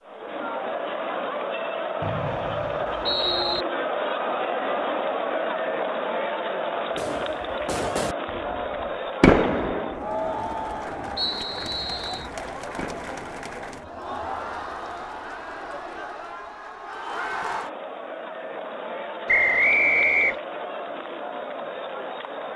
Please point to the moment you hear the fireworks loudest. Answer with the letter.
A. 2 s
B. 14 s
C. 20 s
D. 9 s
D.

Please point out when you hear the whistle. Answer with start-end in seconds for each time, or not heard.
2.0-3.6, 11.2-12.3, 19.2-20.4.